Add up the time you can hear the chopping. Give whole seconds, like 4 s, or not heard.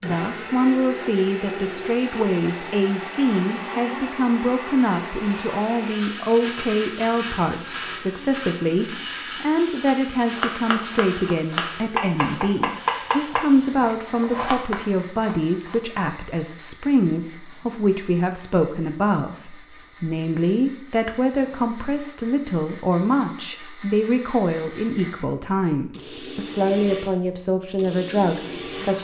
6 s.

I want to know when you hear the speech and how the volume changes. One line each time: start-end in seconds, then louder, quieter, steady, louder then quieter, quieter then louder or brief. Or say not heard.
0.0-28.9 steady.